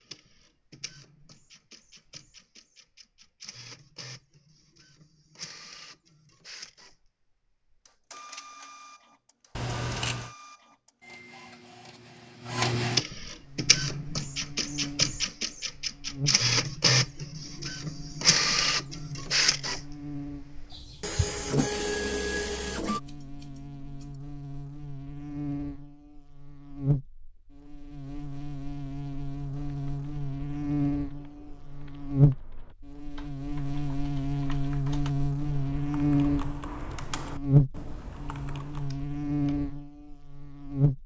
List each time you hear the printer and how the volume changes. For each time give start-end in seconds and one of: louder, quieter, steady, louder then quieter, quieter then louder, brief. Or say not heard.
0.0-23.0 louder.